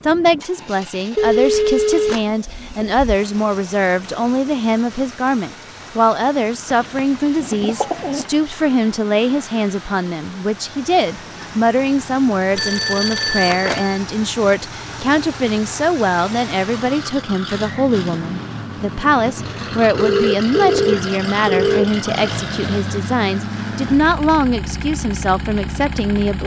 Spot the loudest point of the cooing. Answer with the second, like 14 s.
8 s.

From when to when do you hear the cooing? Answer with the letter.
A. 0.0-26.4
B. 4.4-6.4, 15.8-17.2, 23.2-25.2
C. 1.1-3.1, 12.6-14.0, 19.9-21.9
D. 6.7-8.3
D.